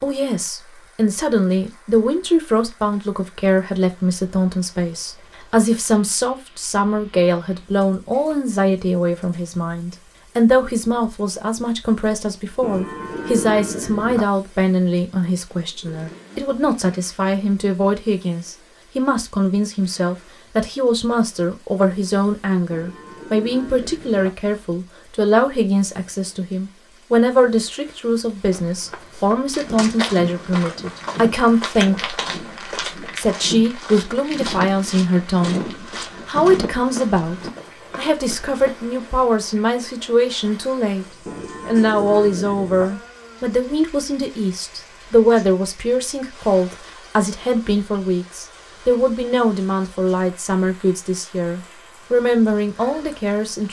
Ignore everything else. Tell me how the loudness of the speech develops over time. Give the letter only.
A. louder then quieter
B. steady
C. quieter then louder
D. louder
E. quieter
B.